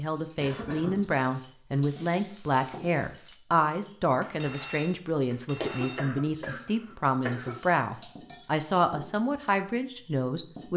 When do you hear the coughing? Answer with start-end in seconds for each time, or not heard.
0.4-1.1, 5.6-7.6.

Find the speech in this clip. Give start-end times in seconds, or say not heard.
0.0-10.7.